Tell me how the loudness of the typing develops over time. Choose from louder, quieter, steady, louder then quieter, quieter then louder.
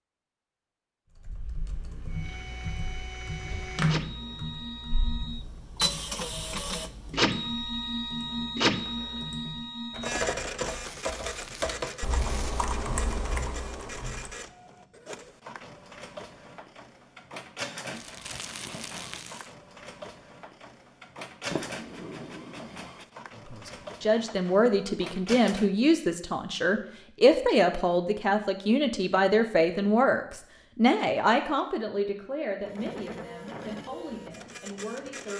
quieter then louder.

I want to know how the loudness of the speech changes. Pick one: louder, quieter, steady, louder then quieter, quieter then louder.
quieter.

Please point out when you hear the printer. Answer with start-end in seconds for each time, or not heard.
2.1-25.7, 32.6-35.3.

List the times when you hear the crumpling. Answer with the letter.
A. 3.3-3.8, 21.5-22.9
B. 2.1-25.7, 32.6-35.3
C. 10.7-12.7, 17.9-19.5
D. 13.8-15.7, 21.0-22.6
C.